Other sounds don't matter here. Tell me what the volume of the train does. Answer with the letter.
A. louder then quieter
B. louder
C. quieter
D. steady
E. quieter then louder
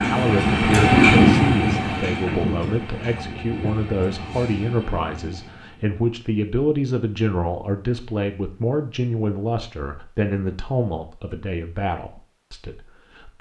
C.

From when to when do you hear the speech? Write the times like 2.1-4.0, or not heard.
0.1-13.3.